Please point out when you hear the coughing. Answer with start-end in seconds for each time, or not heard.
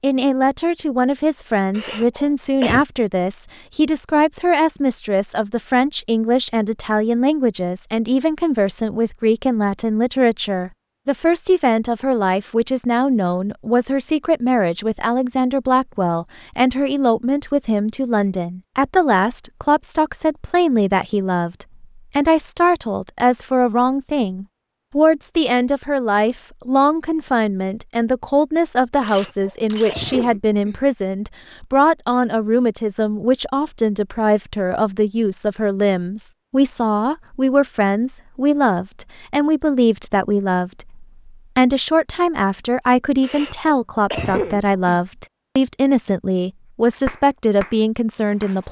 1.7-2.9, 29.0-30.8, 43.2-45.0.